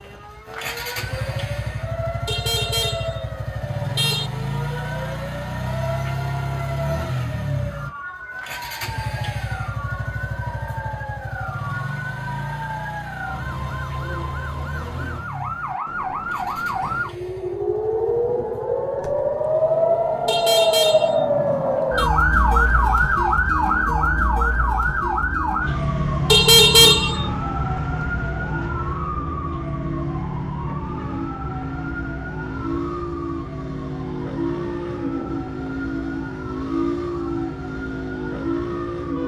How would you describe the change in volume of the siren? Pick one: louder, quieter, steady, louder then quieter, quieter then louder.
louder then quieter.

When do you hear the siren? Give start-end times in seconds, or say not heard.
0.0-39.2.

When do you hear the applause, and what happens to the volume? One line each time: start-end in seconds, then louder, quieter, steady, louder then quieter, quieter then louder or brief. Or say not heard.
not heard.